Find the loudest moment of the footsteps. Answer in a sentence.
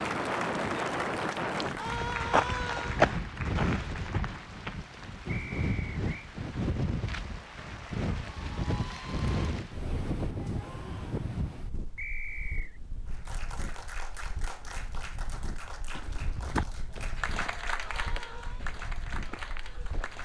The loudest moment of the footsteps is at 3 seconds.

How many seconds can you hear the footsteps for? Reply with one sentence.
The footsteps can be heard for 8 seconds in total.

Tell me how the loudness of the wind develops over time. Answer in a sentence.
The volume of the wind goes down.